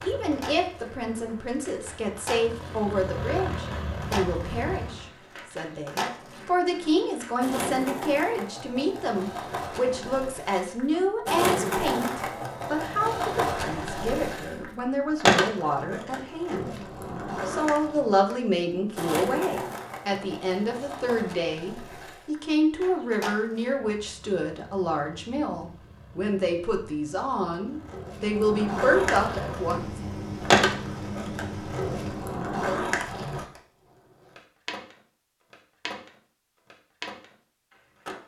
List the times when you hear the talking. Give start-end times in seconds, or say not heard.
0.0-30.0.